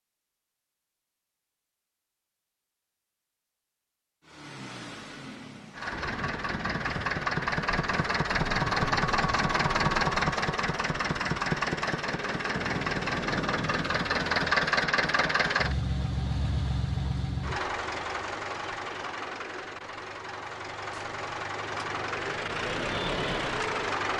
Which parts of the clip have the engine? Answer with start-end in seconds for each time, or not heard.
4.3-24.1.